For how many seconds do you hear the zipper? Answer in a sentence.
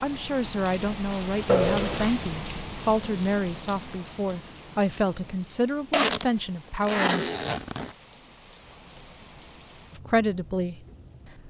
The zipper can be heard for 3 seconds in total.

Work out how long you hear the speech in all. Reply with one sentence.
The speech can be heard for 9 seconds in total.